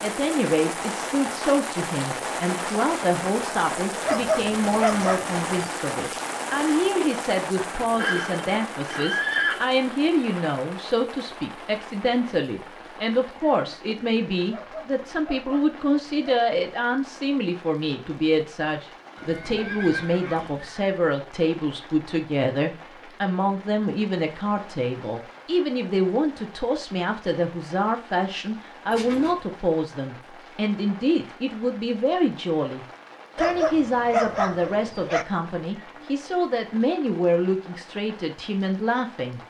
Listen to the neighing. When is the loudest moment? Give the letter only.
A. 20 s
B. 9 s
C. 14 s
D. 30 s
B.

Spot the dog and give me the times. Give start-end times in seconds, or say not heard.
4.0-5.5, 14.5-16.4, 33.4-35.2.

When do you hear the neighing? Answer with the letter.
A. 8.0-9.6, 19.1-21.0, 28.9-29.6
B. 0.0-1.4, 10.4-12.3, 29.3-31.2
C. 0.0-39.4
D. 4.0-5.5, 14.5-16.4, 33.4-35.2
A.